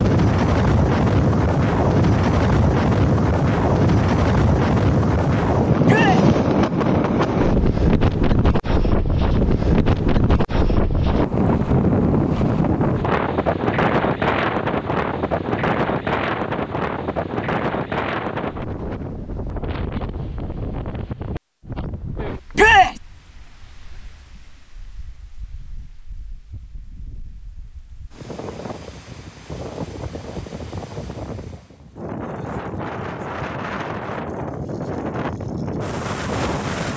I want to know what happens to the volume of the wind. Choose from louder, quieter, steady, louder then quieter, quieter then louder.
quieter then louder.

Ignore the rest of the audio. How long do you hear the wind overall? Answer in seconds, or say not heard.
37 s.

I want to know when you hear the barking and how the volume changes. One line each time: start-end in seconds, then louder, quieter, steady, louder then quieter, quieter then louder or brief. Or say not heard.
not heard.